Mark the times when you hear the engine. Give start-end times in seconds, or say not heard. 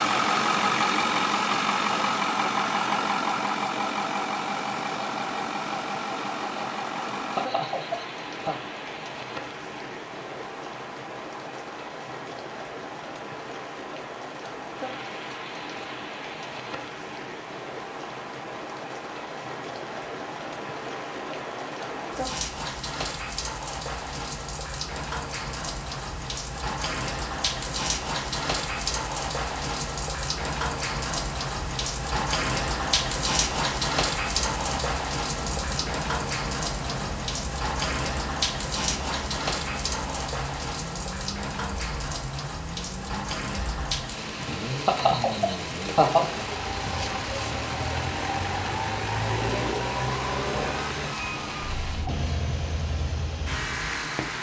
0.0-7.5, 34.5-54.3.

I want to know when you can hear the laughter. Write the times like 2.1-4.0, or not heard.
7.3-8.6, 44.9-46.5.